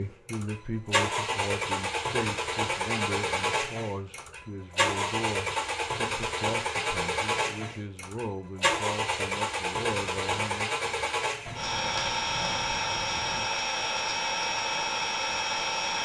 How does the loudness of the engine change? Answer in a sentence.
The loudness of the engine stays about the same.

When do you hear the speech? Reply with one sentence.
You can hear the speech from 0.0 to 10.8 s.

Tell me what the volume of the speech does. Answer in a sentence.
The volume of the speech stays about the same.